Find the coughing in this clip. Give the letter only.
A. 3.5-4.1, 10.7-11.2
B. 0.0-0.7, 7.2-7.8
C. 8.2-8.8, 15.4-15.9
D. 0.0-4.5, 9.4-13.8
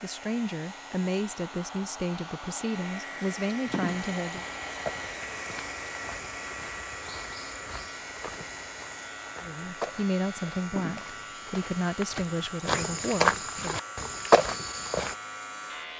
A.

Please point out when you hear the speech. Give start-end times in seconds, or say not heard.
0.0-4.5, 9.4-13.8.